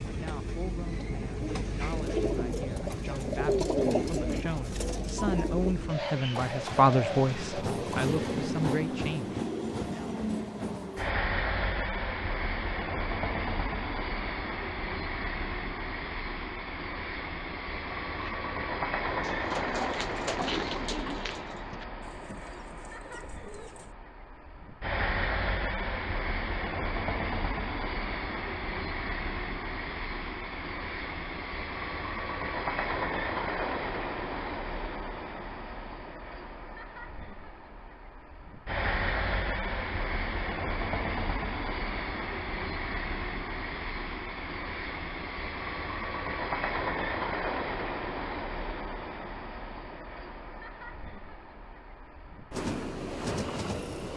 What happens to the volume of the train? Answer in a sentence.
The volume of the train stays about the same.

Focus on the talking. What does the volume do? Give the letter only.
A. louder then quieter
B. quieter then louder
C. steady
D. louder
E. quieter
A.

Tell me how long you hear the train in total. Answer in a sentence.
You can hear the train for 54 seconds altogether.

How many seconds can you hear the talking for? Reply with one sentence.
You can hear the talking for 10 seconds altogether.